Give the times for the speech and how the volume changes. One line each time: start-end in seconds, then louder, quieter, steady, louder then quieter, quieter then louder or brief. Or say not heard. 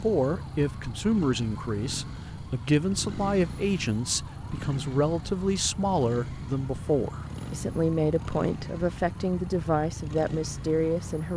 0.0-11.3 steady.